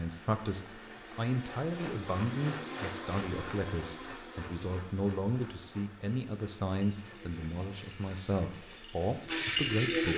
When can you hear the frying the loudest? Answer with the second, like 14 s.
10 s.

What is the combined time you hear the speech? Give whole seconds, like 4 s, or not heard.
10 s.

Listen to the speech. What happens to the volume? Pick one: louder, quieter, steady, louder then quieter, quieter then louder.
steady.